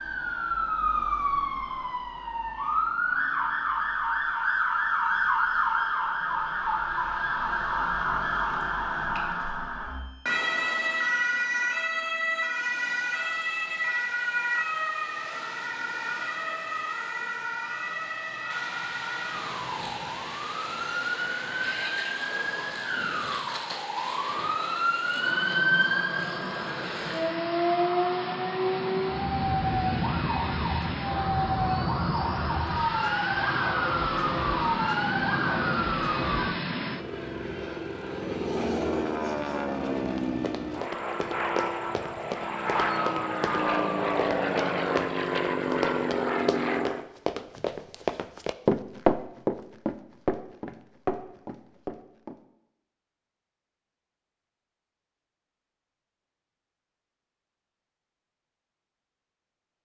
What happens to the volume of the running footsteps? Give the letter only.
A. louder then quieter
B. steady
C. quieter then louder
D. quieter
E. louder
A.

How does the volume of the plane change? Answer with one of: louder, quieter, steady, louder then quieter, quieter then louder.
louder.